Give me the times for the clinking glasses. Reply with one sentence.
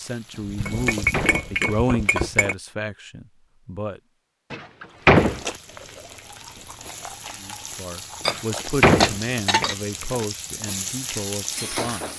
The clinking glasses can be heard from 0.4 to 2.5 s and from 8.2 to 9.8 s.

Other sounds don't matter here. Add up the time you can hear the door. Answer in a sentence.
The door can be heard for 4 seconds in total.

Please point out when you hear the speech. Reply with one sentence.
You can hear the speech from 0.0 to 4.0 s and from 7.4 to 12.1 s.